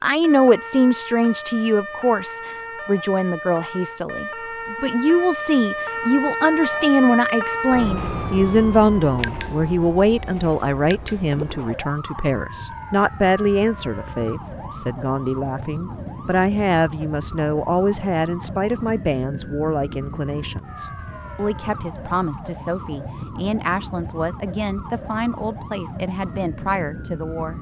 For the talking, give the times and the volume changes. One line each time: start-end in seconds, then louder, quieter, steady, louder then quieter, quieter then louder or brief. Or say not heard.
0.0-27.5 quieter.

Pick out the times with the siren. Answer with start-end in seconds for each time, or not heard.
0.1-27.5.